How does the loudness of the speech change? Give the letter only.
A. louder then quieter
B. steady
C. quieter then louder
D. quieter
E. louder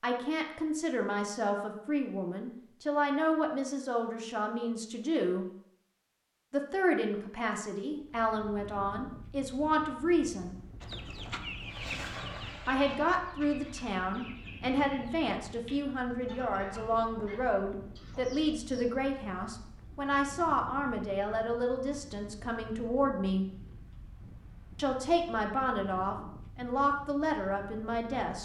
B.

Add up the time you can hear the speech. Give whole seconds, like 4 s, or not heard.
24 s.